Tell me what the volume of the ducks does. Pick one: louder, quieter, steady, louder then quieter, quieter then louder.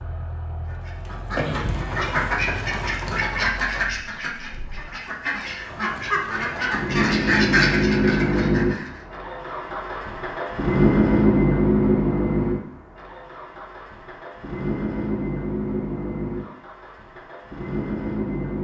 quieter then louder.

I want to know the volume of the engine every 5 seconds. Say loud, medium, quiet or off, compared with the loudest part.
quiet, loud, loud, medium.